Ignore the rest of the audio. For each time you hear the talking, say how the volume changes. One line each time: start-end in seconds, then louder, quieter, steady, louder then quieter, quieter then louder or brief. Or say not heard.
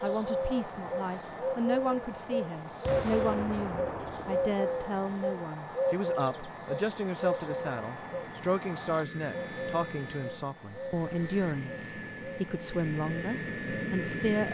0.0-14.5 steady.